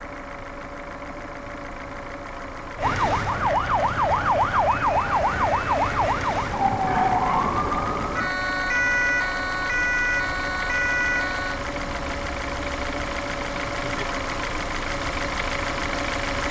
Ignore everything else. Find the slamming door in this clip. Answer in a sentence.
You can't hear the slamming door here.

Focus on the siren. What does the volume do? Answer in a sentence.
The volume of the siren stays about the same.